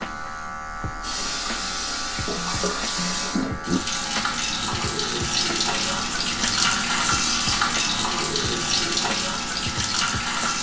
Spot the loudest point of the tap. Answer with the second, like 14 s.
7 s.